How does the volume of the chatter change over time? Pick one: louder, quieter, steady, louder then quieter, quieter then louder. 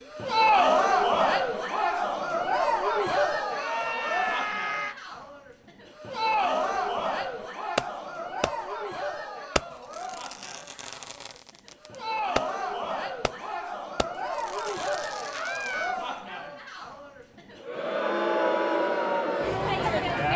quieter then louder.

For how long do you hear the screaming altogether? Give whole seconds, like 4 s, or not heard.
2 s.